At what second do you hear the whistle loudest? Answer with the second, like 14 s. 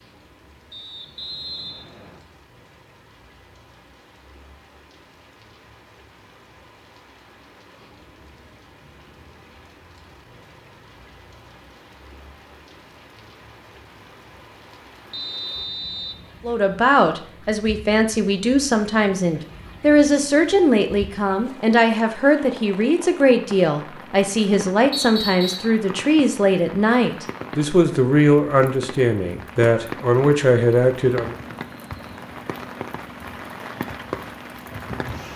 25 s.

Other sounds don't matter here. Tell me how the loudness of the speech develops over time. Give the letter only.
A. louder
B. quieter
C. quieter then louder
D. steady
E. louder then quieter
D.